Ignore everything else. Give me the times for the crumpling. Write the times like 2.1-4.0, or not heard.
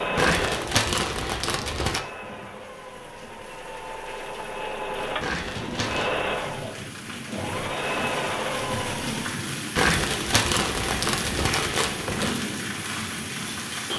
0.1-2.0, 5.2-6.2, 9.8-12.4.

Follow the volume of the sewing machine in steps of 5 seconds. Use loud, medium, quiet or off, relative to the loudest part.
loud, loud, off.